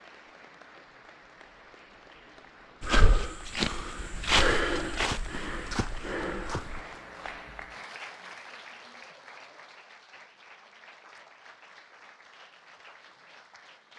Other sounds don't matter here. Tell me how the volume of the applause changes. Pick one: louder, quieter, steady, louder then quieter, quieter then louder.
louder then quieter.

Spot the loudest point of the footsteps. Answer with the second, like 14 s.
4 s.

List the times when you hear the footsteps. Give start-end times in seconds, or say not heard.
2.8-6.8.